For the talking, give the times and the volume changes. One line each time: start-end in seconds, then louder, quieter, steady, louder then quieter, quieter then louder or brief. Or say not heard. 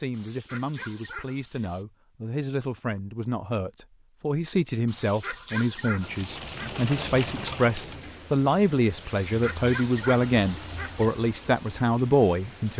0.0-12.7 louder.